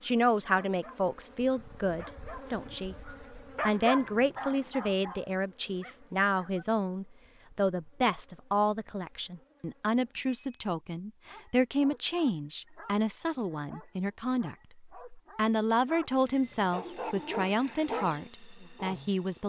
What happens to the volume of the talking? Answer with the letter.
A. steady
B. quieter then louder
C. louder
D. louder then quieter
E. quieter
A.